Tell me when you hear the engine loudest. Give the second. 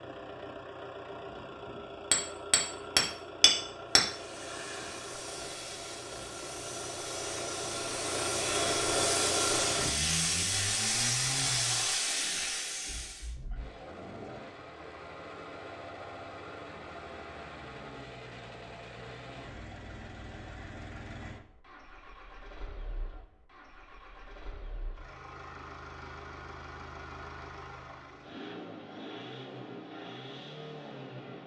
9 s.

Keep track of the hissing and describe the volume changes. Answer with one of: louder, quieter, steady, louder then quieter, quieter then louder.
louder.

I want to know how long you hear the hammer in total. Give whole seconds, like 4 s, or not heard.
2 s.